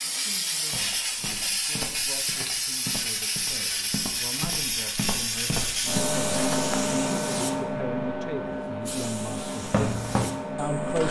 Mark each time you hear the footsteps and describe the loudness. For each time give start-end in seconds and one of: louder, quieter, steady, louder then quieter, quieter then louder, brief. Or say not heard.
0.7-6.8 louder
9.6-11.0 brief.